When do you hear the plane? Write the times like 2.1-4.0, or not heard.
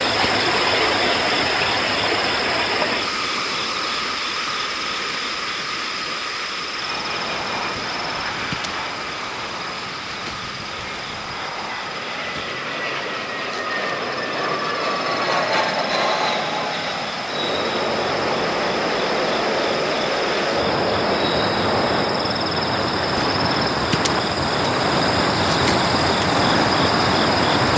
6.7-22.4.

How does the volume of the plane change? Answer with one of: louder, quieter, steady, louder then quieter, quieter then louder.
louder.